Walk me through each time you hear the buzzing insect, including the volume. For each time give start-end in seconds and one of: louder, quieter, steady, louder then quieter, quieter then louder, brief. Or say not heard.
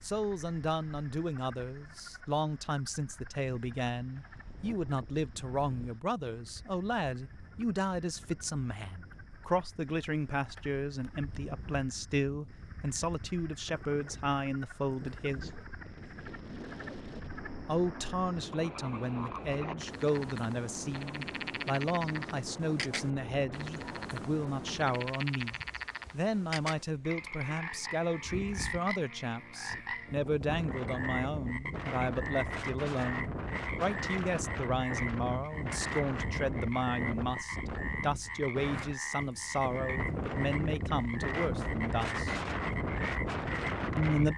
not heard.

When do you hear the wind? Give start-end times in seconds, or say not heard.
0.0-44.3.